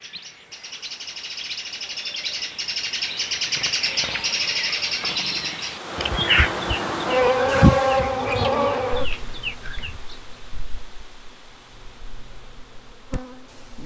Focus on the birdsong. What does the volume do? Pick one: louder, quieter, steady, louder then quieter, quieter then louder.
louder then quieter.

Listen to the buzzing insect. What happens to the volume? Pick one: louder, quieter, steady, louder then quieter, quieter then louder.
quieter then louder.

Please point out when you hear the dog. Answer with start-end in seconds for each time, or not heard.
not heard.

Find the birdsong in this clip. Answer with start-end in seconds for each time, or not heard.
0.0-10.3.